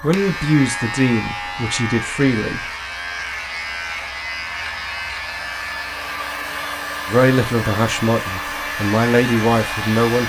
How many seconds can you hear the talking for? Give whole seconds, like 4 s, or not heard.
6 s.